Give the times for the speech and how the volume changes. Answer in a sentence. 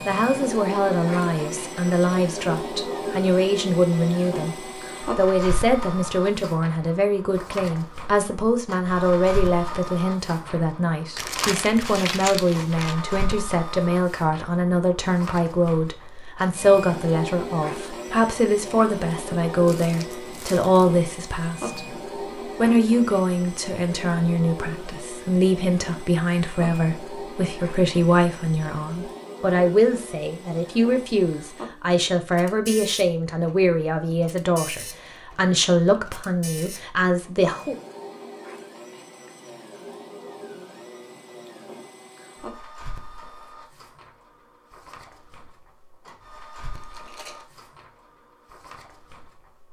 You can hear the speech from 0.1 to 37.8 s, at a steady volume.